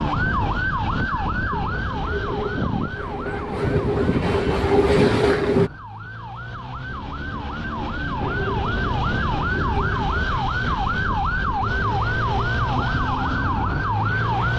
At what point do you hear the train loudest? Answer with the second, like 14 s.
5 s.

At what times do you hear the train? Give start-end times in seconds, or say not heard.
1.5-5.7, 8.2-14.5.